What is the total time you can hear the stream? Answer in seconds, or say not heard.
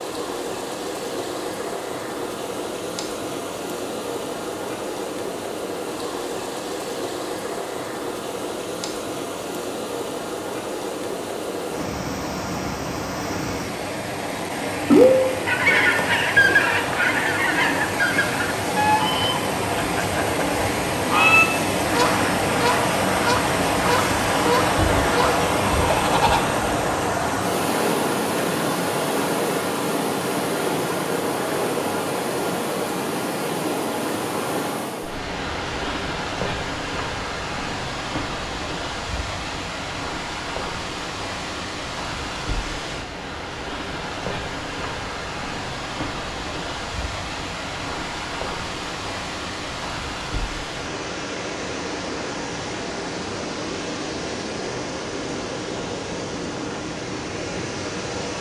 58 s.